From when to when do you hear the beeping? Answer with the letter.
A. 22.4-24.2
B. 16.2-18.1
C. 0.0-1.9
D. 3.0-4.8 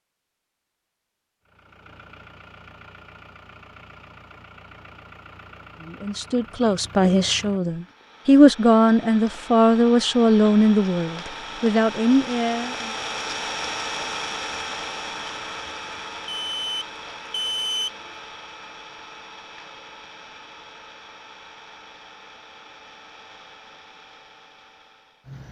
B.